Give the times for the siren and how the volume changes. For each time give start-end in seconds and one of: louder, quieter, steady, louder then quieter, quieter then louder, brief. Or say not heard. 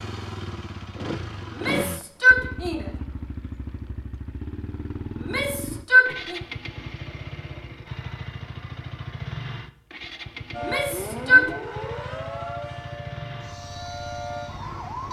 10.5-15.0 quieter then louder.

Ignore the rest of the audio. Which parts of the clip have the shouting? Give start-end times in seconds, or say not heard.
1.5-2.9, 5.2-6.4, 10.6-11.5.